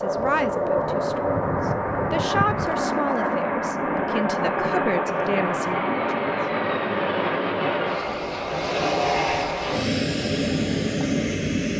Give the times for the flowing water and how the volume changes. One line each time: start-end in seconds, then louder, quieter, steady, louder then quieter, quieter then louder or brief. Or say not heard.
not heard.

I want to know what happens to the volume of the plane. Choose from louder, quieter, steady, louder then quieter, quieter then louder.
steady.